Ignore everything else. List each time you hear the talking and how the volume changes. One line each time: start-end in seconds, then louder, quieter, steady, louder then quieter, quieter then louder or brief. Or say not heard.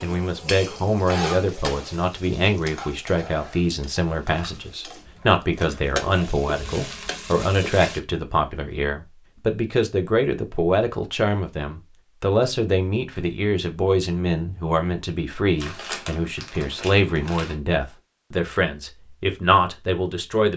0.0-20.5 steady.